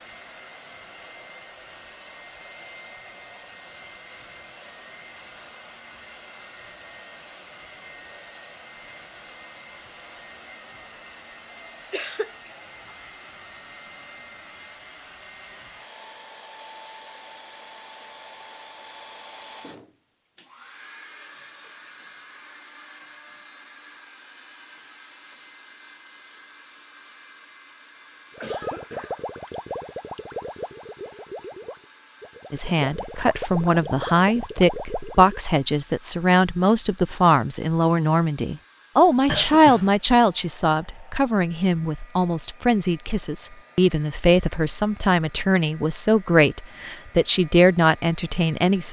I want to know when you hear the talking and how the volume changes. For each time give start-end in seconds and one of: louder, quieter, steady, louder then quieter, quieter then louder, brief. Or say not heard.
32.5-48.8 steady.